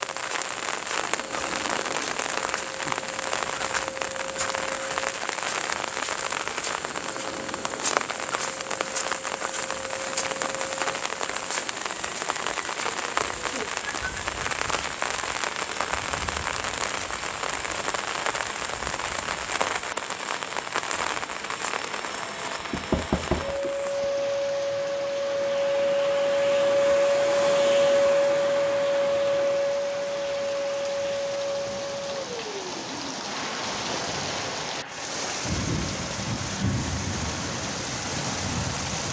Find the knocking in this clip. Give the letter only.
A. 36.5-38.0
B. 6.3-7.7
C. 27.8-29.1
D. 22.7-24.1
D.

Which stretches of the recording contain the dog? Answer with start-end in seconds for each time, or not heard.
not heard.